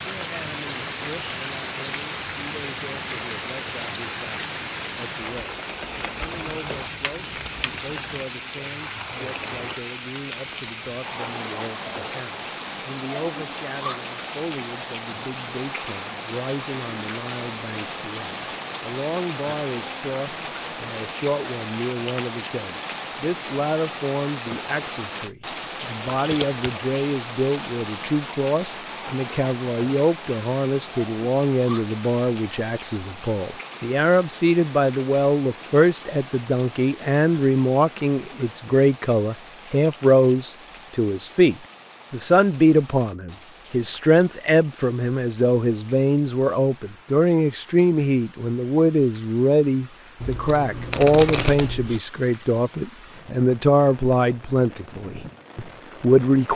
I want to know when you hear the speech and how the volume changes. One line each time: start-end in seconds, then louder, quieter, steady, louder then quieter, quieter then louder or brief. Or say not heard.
0.0-56.5 louder.